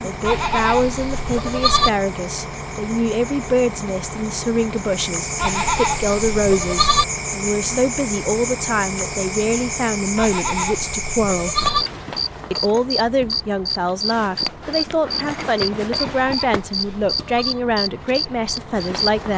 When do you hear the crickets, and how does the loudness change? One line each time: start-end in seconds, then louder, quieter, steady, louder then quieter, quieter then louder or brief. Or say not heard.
0.0-19.3 louder.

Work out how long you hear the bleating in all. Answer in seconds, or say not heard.
7 s.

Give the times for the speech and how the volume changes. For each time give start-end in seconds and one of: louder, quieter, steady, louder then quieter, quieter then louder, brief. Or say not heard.
0.0-11.7 steady
12.5-19.3 steady.